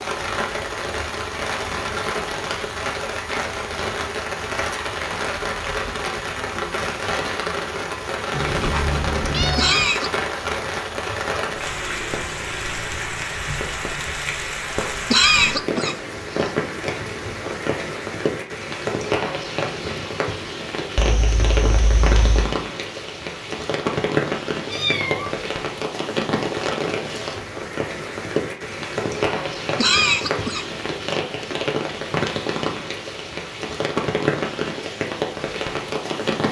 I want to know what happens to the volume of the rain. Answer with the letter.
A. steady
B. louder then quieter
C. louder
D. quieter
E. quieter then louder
A.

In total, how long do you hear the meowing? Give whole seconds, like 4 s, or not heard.
4 s.